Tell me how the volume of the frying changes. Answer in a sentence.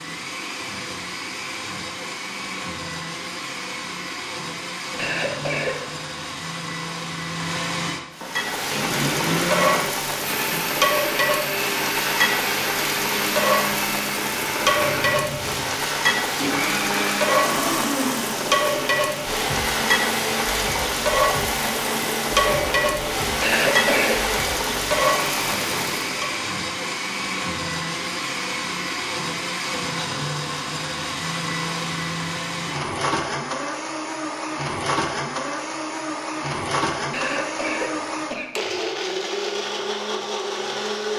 The loudness of the frying stays about the same.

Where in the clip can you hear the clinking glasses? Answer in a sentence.
The clinking glasses can't be heard in this clip.